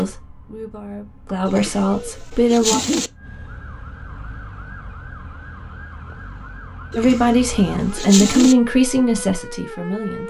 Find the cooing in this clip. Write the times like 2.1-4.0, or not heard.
1.4-3.1, 6.9-8.6.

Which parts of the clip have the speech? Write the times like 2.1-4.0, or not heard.
0.0-2.8, 7.0-10.2.